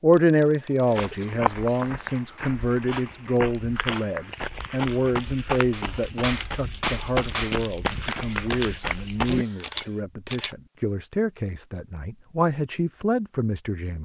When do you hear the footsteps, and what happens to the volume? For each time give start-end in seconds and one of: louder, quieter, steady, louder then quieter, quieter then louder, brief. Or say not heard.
0.9-9.4 steady.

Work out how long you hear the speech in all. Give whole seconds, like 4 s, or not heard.
14 s.